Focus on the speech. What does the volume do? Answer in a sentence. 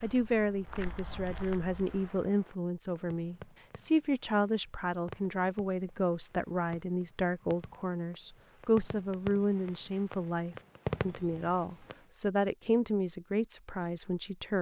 The volume of the speech stays about the same.